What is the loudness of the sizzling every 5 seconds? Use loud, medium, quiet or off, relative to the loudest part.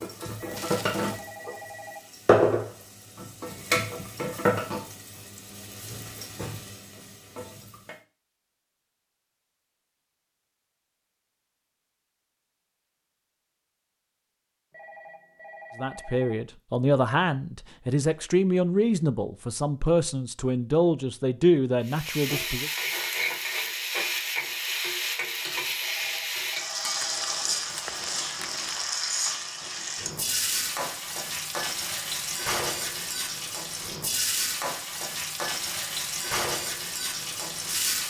loud, quiet, off, off, loud, loud, loud, loud.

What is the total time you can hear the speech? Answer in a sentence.
The speech can be heard for 7 seconds in total.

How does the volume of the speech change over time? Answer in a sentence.
The volume of the speech stays about the same.